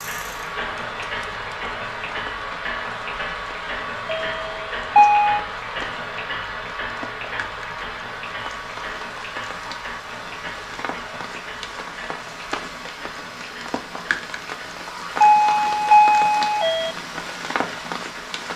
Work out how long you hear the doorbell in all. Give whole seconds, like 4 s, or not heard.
3 s.